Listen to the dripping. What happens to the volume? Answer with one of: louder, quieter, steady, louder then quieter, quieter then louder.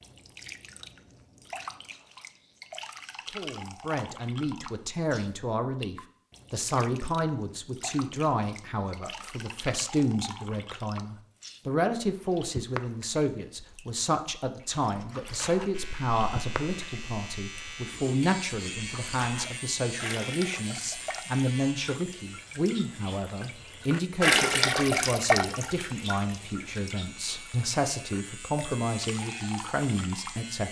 louder.